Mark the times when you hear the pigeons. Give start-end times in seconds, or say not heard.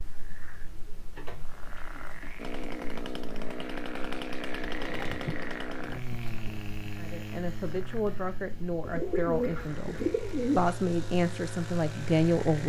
0.3-2.3, 4.7-6.3, 8.8-10.7.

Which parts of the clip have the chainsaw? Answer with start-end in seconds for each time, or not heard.
2.4-12.6.